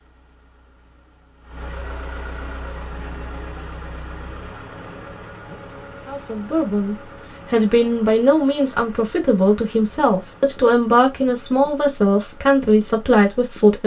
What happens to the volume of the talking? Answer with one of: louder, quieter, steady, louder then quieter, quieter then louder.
steady.